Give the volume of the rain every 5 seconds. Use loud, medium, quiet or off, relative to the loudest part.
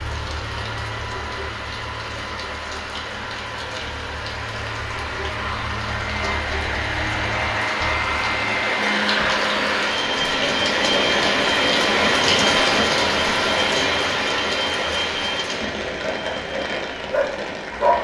quiet, medium, loud, medium.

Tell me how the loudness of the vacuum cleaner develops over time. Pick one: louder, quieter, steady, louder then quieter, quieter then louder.
louder then quieter.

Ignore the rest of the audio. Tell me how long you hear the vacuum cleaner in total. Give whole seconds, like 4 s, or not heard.
18 s.